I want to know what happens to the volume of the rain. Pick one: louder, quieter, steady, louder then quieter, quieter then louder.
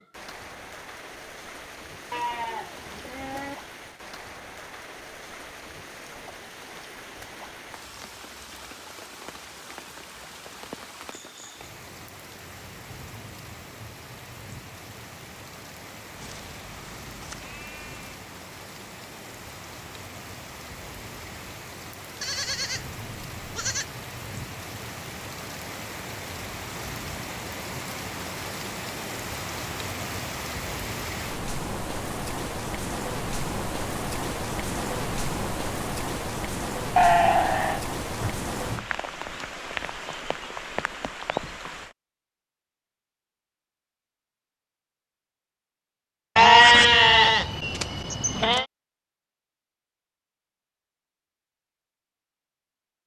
louder.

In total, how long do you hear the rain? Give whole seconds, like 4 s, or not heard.
42 s.